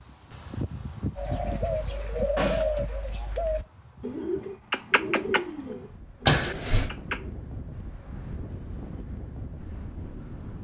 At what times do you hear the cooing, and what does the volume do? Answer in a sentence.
You can hear the cooing from 1.1 to 7.3 s, getting quieter.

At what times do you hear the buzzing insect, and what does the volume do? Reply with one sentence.
The buzzing insect can't be heard in this clip.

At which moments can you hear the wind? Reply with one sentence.
You can hear the wind from 0.0 to 10.5 s.